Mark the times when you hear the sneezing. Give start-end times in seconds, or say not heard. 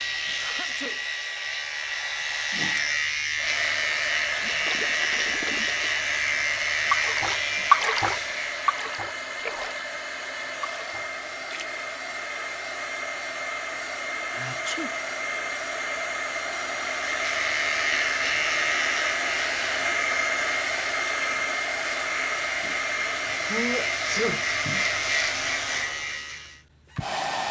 0.4-1.0, 14.3-14.9, 23.5-24.4.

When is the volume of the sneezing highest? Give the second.
24 s.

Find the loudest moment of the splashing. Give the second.
8 s.